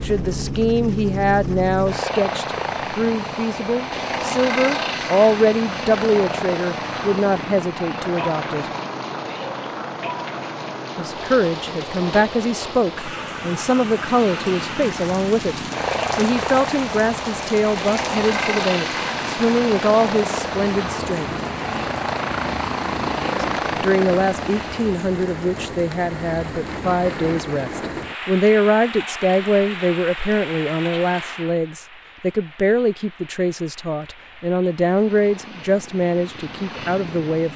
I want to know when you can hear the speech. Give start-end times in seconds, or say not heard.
0.0-8.7, 10.9-21.3, 23.4-37.5.